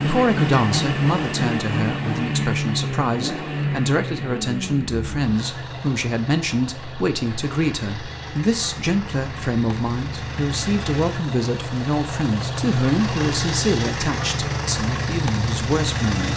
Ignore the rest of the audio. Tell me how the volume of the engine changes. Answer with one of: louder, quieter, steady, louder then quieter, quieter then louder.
quieter then louder.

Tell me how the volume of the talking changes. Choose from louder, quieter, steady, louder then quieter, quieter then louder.
steady.